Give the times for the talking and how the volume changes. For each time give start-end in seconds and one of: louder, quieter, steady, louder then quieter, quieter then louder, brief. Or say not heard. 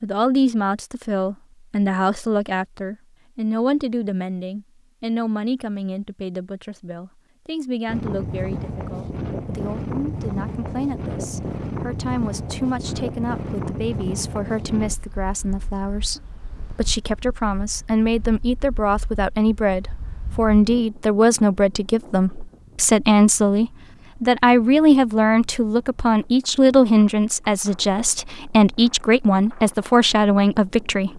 0.0-31.1 quieter then louder.